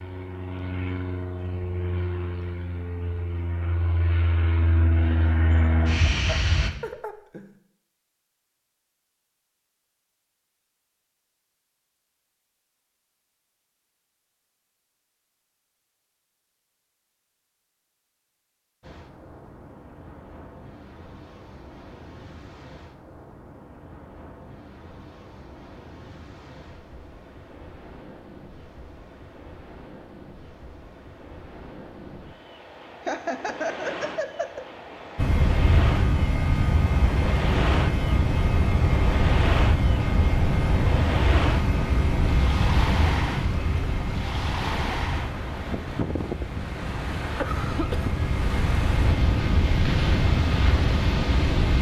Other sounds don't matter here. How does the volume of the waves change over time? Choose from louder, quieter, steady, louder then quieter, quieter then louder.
louder.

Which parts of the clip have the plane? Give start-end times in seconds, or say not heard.
0.0-6.7, 35.1-51.7.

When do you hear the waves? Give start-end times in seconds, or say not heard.
18.8-51.7.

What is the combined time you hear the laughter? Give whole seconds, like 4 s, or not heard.
3 s.